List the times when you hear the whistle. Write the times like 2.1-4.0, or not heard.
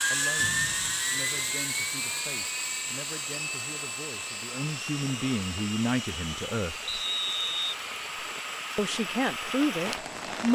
0.3-1.1, 6.8-8.2.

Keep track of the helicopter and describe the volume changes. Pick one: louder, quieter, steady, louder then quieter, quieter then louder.
quieter.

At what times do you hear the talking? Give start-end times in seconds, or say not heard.
0.1-6.8, 8.8-10.5.